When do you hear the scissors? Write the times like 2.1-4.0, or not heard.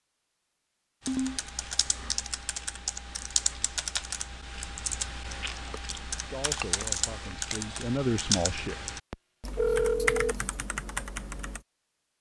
not heard.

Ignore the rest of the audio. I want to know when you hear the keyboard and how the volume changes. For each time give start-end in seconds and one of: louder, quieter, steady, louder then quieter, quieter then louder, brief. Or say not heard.
1.1-11.6 steady.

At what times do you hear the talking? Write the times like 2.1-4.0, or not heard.
6.1-8.8.